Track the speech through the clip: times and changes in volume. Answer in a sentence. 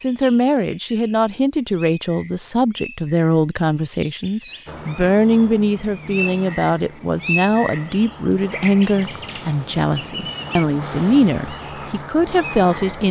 You can hear the speech from 0.0 to 13.0 s, at a steady volume.